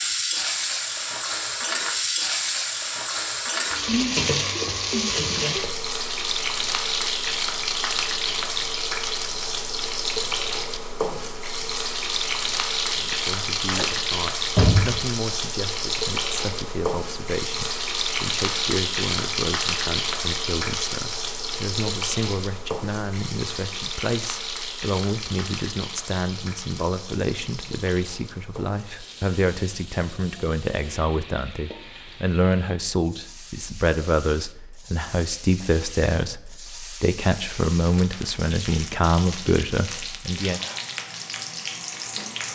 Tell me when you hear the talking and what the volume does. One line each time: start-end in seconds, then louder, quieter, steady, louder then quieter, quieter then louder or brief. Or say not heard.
12.9-40.6 louder.